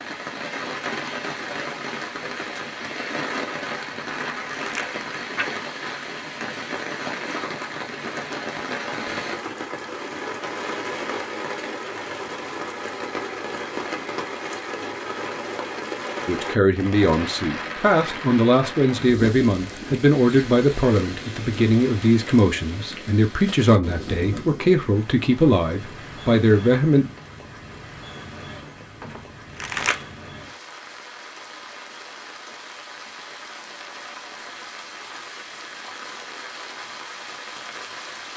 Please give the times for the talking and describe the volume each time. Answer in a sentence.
You can hear the talking from 16.2 to 27.1 s, at a steady volume.